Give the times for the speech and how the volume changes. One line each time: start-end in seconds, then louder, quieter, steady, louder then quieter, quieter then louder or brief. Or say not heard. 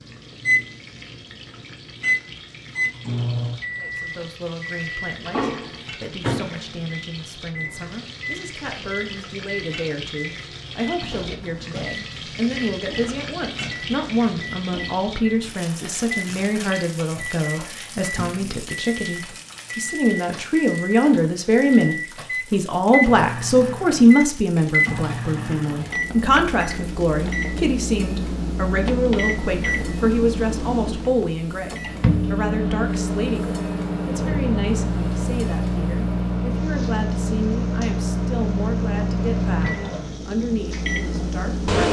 3.8-41.8 louder then quieter.